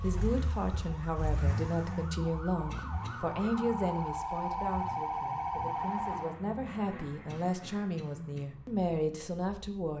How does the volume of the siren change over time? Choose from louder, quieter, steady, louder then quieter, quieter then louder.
louder.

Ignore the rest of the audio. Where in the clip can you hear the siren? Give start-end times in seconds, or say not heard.
0.0-6.4.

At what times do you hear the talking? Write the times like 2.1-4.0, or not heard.
0.0-9.9.